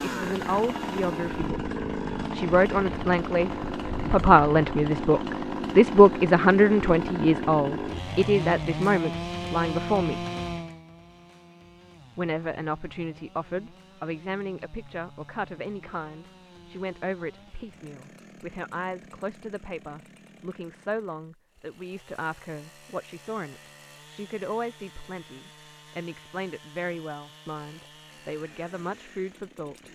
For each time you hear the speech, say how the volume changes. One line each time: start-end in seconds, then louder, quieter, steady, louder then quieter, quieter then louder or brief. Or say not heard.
0.0-10.2 louder then quieter
12.2-29.9 steady.